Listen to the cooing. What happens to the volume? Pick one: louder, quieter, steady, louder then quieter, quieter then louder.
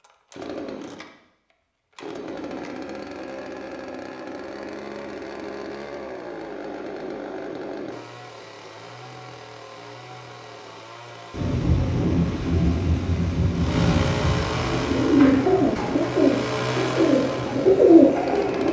quieter then louder.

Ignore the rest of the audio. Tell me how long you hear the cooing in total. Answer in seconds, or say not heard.
4 s.